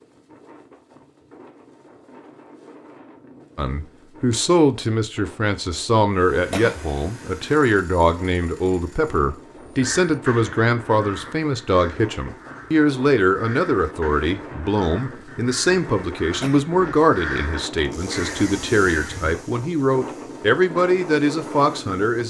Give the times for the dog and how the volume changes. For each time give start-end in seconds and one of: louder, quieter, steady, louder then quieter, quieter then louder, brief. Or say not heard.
not heard.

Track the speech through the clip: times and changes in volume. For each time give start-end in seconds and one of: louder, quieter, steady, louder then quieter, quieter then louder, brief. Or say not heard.
3.5-22.2 steady.